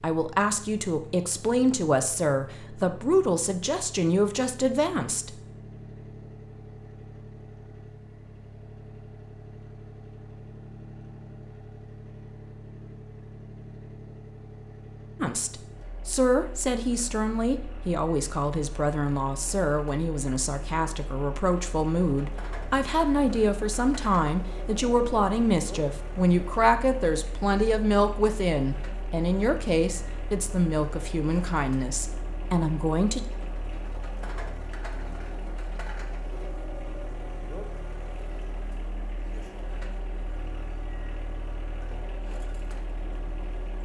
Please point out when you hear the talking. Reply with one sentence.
The talking can be heard from 0.0 to 5.3 s and from 15.2 to 33.2 s.